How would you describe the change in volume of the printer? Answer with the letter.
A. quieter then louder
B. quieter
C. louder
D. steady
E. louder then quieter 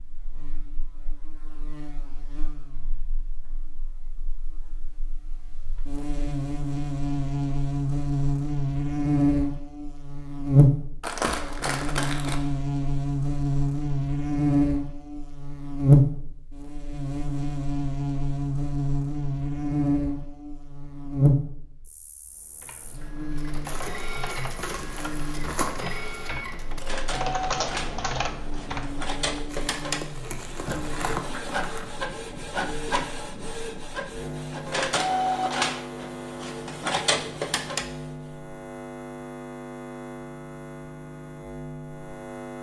C.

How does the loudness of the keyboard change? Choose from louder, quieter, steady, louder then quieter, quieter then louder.
louder.